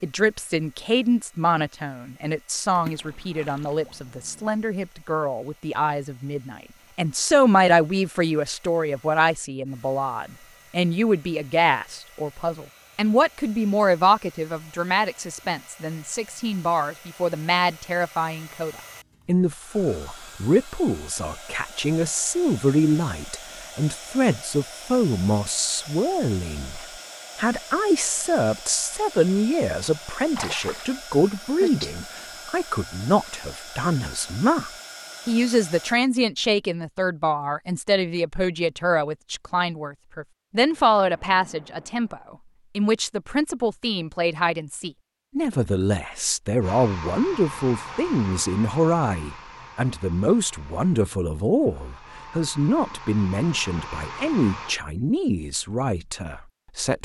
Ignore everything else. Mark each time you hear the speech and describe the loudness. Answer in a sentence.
The speech can be heard from 0.0 to 57.0 s, at a steady volume.